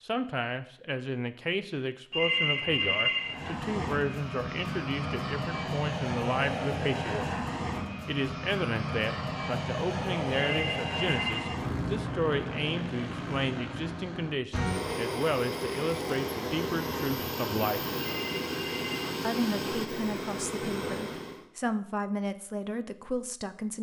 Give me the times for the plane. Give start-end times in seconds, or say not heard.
3.2-21.4.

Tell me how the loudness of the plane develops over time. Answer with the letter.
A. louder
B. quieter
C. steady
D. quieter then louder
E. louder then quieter
C.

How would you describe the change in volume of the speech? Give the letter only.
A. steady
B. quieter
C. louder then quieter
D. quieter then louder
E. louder
A.